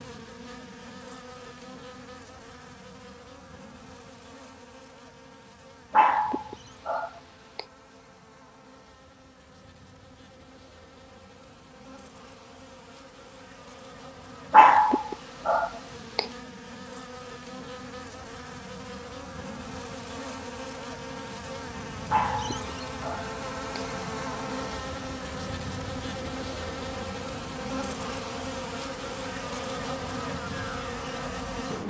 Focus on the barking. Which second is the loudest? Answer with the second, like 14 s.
15 s.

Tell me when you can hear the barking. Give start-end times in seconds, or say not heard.
5.9-7.7, 14.5-16.2, 22.1-23.9.